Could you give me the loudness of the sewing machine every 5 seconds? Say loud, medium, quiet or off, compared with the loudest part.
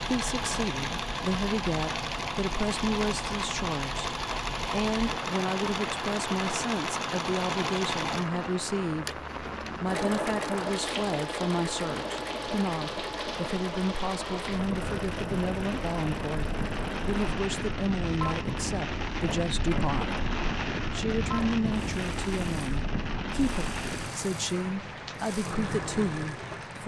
loud, loud, loud, medium, medium, medium.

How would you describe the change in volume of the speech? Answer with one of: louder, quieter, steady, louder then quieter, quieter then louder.
steady.